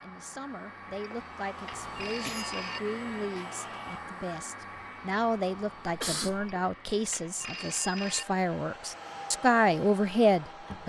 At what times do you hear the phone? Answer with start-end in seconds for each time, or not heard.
1.0-2.8, 6.5-8.2.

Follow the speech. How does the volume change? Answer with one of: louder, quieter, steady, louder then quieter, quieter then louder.
louder.